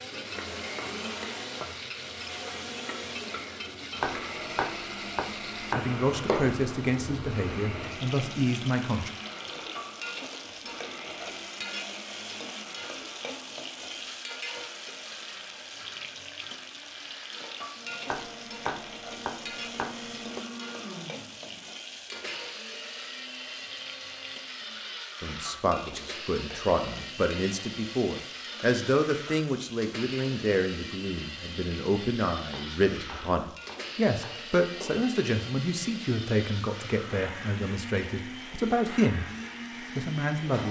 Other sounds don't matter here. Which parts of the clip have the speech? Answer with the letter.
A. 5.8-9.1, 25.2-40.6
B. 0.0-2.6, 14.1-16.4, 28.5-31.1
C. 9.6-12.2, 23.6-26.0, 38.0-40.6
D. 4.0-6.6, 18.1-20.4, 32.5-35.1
A.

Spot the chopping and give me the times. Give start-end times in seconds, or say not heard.
4.0-6.6, 18.1-20.4, 32.5-35.1.